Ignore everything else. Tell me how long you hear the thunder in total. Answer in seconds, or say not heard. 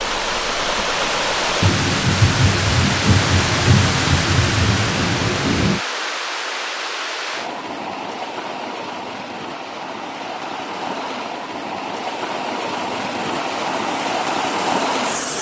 4 s.